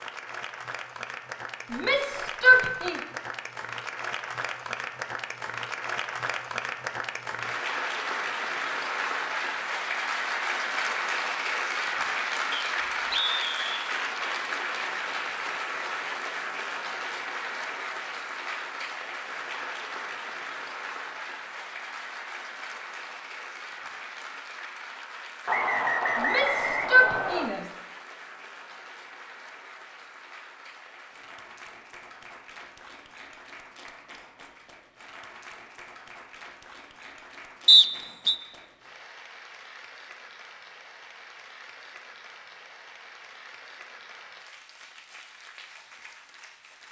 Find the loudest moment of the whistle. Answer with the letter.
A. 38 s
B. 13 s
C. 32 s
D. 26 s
A.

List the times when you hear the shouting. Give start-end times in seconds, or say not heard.
1.7-3.0, 26.1-27.6.